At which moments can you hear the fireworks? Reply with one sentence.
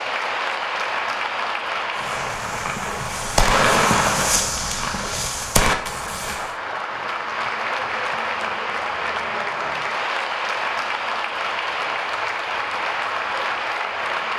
You can hear the fireworks from 1.9 to 6.5 s.